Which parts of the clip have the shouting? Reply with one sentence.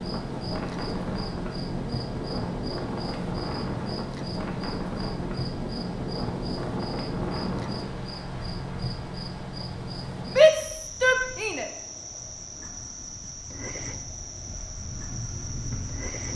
You can hear the shouting from 10.2 to 11.7 s.